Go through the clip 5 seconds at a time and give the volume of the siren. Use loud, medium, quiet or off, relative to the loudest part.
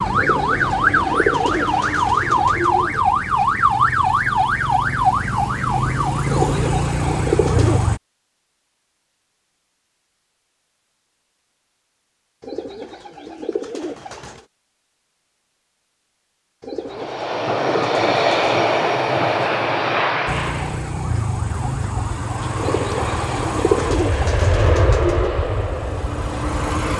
loud, loud, off, off, medium, medium.